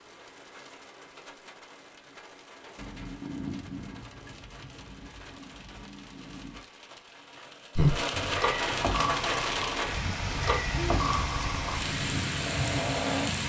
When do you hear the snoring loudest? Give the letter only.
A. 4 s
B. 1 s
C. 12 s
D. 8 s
D.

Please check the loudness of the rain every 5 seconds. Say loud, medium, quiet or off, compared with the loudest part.
quiet, loud, loud.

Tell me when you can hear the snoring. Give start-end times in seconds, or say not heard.
7.8-13.3.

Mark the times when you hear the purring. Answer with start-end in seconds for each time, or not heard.
2.8-6.6.